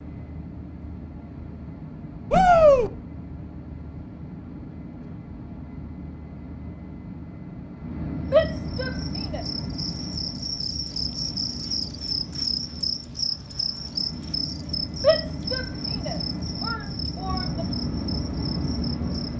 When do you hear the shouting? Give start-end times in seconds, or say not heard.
2.3-2.9, 8.3-9.4, 15.0-17.6.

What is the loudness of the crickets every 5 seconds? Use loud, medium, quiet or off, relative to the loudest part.
off, medium, loud, medium.